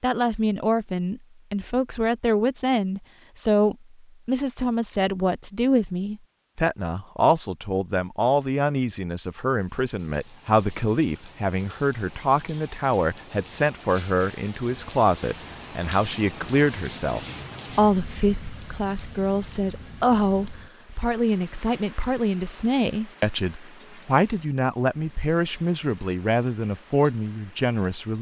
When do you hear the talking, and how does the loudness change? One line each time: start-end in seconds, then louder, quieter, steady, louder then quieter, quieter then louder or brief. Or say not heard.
0.0-28.1 steady.